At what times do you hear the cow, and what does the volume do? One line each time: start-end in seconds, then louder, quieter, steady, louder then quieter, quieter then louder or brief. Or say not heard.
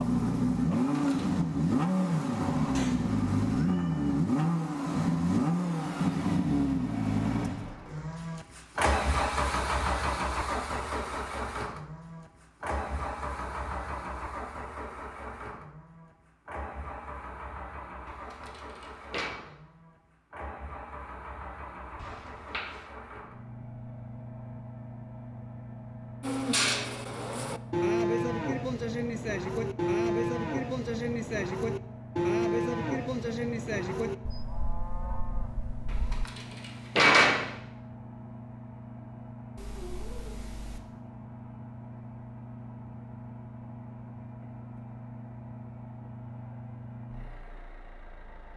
26.2-36.2 quieter.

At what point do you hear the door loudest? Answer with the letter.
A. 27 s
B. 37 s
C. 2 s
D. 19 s
B.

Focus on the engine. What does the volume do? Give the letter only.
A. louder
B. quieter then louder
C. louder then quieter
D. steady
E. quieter
E.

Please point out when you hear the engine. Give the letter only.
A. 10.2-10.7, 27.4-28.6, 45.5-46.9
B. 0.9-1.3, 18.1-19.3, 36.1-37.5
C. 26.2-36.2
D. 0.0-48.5
D.